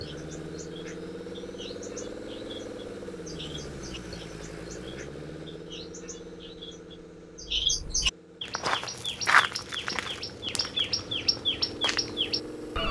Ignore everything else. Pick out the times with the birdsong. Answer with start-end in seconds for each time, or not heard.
0.0-12.8.